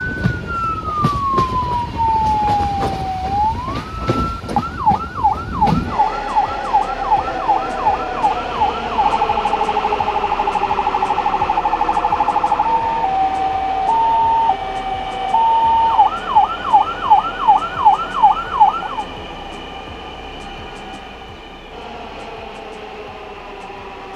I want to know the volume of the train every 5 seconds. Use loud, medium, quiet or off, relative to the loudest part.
loud, loud, loud, medium, medium.